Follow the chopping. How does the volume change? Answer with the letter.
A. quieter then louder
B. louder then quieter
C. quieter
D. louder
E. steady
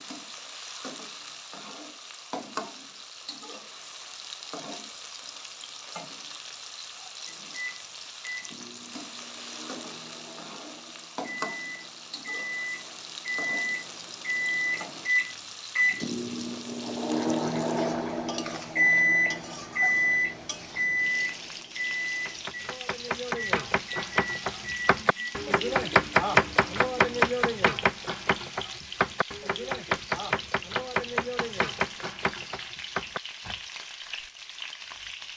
B.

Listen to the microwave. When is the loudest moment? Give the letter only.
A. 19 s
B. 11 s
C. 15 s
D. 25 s
A.